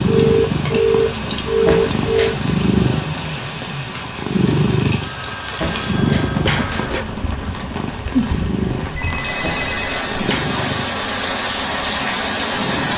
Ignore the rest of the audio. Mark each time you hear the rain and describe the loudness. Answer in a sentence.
You can hear the rain from 0.0 to 12.9 s, getting louder.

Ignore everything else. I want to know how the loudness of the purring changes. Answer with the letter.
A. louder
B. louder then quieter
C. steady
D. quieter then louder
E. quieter
E.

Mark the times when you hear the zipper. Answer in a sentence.
You can hear the zipper from 1.6 to 2.5 s, from 5.6 to 7.0 s and from 9.4 to 10.5 s.